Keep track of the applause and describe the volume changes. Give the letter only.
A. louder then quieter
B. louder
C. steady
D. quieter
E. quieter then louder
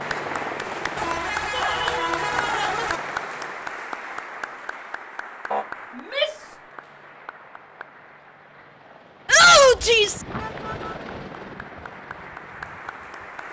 E.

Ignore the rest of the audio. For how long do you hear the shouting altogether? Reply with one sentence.
The shouting can be heard for 3 seconds in total.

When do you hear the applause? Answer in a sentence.
The applause can be heard from 0.0 to 13.4 s.